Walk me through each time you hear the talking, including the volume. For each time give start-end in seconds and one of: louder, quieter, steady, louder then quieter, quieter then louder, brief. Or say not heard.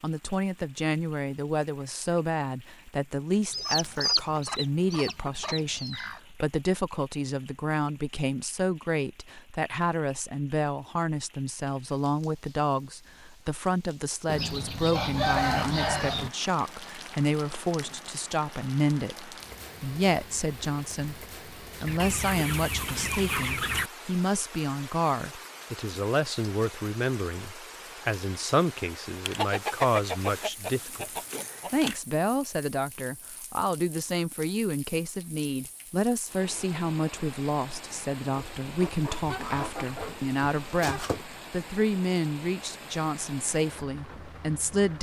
0.0-44.9 steady.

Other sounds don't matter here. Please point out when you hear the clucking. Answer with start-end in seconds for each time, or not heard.
3.5-6.2, 14.2-16.3, 21.9-23.9, 29.2-31.9, 38.4-41.2.